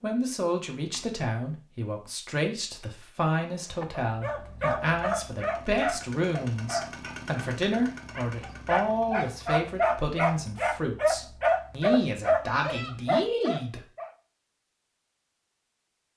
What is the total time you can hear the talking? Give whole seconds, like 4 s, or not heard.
14 s.